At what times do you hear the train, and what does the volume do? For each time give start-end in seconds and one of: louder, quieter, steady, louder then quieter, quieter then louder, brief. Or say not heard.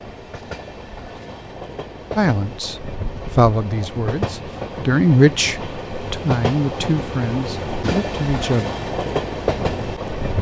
0.0-10.3 louder.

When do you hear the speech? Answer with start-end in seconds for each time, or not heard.
2.1-8.7.